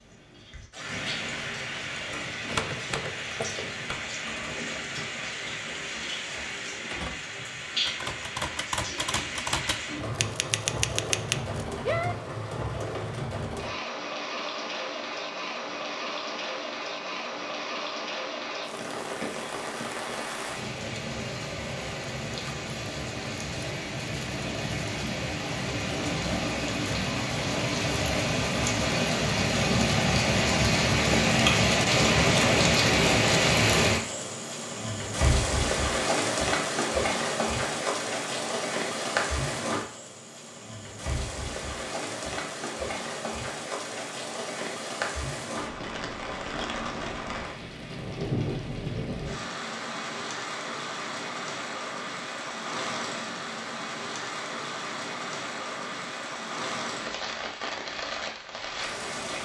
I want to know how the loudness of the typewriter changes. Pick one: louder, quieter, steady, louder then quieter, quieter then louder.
quieter then louder.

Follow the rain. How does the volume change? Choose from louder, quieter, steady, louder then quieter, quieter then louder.
louder then quieter.